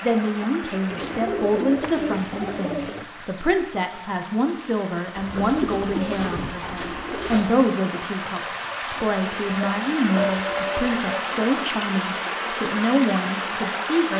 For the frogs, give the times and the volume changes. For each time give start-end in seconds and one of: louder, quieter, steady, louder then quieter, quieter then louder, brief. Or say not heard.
not heard.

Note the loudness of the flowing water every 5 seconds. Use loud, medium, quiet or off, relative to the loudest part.
medium, medium, loud.